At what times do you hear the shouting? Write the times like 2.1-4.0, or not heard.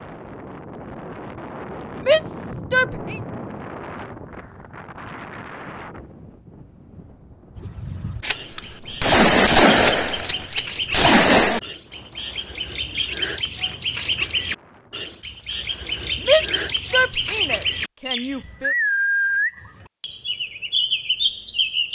1.9-3.2, 16.2-18.8.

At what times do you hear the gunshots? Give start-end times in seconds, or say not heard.
8.2-11.6.